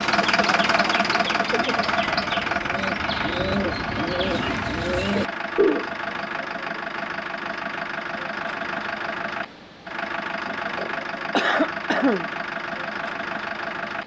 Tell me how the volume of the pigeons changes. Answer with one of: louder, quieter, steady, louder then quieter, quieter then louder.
louder.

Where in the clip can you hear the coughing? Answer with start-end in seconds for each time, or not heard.
10.4-12.3.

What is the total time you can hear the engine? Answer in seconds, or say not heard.
14 s.